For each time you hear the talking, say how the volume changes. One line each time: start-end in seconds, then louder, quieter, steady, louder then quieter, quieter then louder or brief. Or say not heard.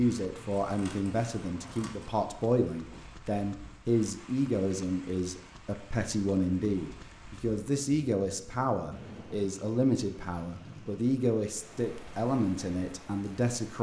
0.0-13.7 steady.